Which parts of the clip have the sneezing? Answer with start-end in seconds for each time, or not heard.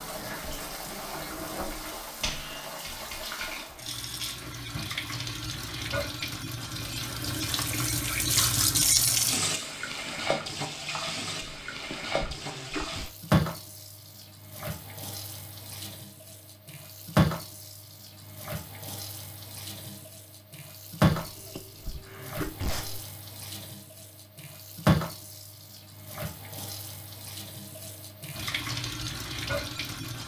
11.4-13.1, 21.2-23.0.